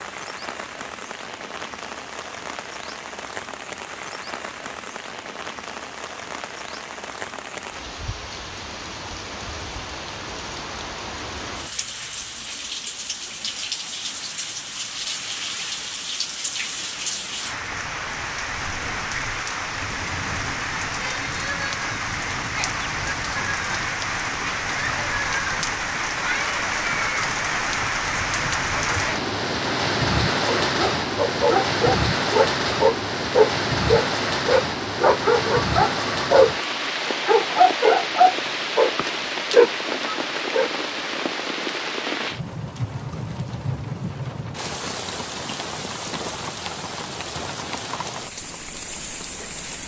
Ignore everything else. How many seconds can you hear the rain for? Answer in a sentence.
The rain can be heard for 50 seconds in total.